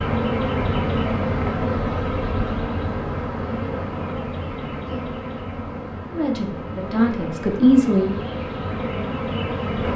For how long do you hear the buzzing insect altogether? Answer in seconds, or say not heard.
10 s.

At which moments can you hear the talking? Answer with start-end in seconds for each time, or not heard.
6.1-8.2.